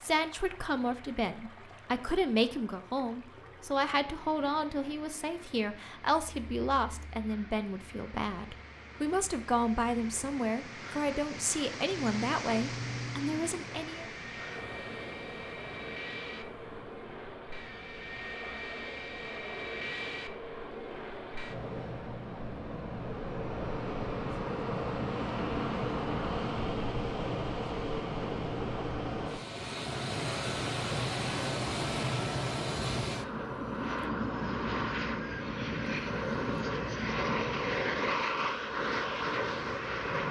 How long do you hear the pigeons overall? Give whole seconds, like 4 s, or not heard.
not heard.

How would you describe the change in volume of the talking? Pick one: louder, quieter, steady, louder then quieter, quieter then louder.
steady.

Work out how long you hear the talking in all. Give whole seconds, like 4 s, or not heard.
14 s.